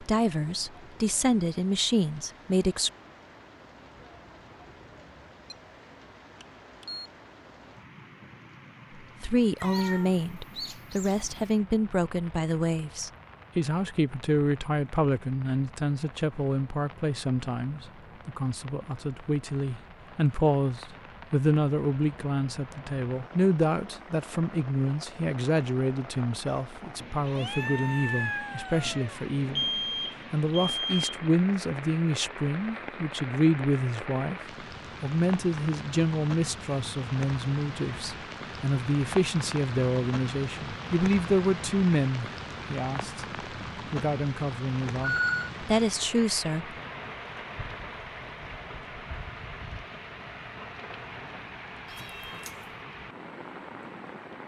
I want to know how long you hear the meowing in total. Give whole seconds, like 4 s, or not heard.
5 s.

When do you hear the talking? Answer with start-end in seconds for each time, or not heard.
0.0-2.9, 9.2-29.6, 30.3-34.4, 35.0-46.8.